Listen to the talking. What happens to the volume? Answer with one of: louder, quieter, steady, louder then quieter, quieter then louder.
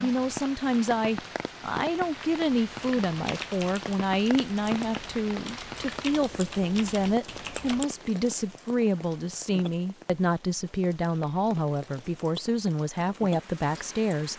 steady.